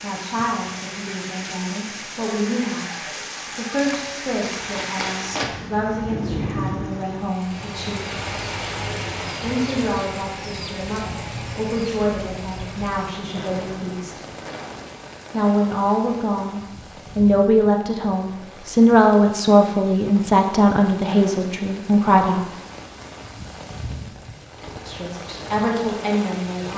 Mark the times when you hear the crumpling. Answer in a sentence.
The crumpling can be heard from 3.8 to 5.6 s.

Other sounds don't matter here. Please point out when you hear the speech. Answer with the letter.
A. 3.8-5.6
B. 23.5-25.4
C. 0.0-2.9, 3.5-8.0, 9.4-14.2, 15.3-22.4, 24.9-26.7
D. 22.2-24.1
C.